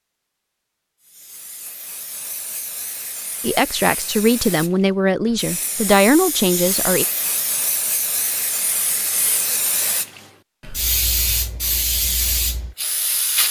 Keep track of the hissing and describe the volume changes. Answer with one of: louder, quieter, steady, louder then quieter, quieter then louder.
louder.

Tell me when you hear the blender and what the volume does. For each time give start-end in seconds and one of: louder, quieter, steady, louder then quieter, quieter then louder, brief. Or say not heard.
not heard.